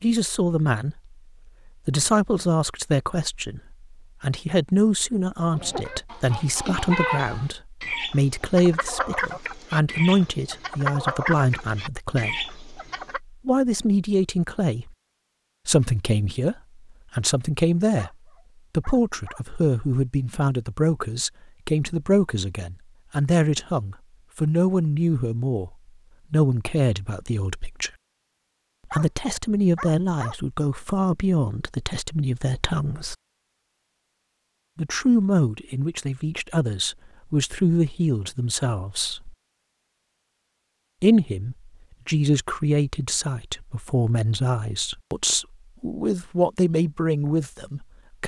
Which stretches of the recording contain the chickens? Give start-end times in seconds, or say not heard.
5.5-13.2.